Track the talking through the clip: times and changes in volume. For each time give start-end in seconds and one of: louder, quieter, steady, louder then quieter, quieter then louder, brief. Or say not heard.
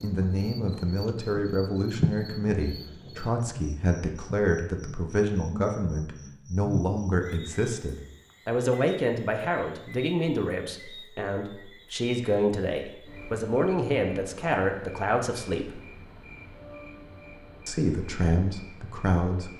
0.0-15.8 steady
17.6-19.5 brief.